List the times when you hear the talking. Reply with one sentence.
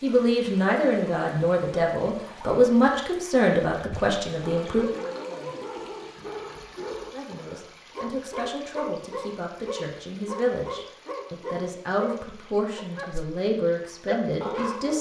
You can hear the talking from 0.0 to 4.8 s and from 7.1 to 14.9 s.